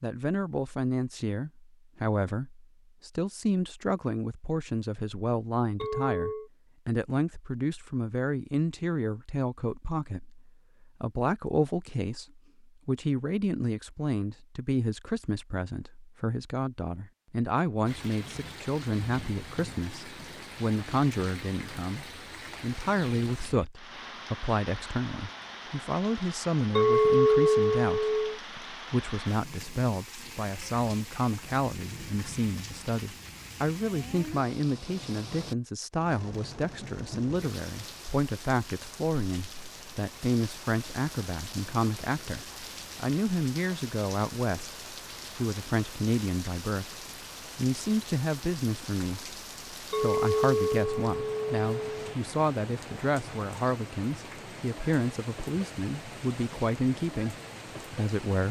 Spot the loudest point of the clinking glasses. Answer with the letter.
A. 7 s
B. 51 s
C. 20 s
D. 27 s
D.